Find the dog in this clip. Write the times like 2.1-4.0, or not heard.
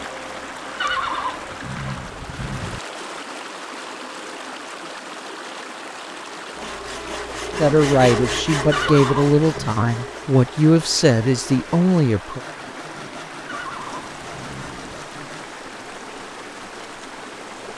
not heard.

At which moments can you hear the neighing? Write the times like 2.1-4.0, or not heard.
0.8-2.8, 8.7-9.8, 13.4-14.9.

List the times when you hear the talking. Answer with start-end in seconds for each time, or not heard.
7.5-12.4.